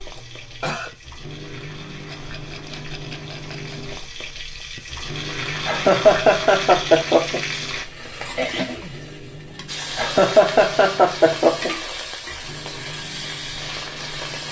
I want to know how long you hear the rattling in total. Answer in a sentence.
The rattling can be heard for 2 seconds in total.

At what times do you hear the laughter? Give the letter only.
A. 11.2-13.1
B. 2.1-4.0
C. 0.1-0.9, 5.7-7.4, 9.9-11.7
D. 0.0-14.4
C.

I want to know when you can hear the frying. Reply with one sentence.
The frying can be heard from 0.0 to 14.4 s.